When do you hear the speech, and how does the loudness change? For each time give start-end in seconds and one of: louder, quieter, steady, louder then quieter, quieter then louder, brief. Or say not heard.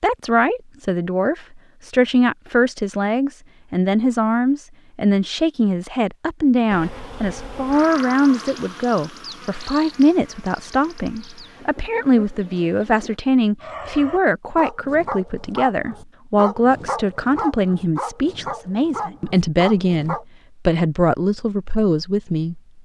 0.0-22.6 steady.